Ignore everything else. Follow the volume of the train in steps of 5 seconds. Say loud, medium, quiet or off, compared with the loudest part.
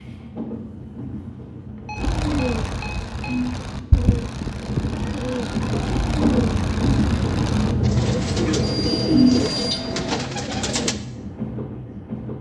medium, loud, medium.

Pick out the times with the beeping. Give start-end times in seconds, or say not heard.
1.8-3.5, 8.3-10.2.